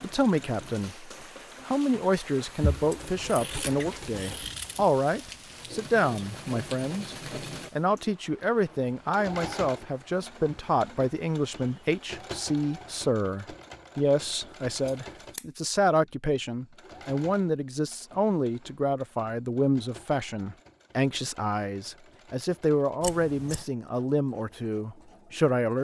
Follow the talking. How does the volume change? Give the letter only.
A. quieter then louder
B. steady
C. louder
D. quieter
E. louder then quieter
B.